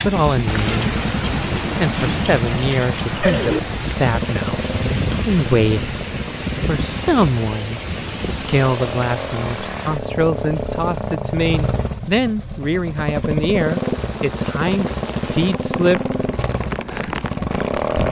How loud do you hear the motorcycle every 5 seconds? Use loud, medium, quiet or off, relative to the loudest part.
loud, medium, loud, loud.